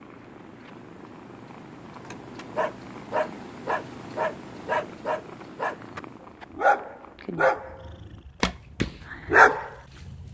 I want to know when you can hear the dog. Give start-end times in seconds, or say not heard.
2.0-10.2.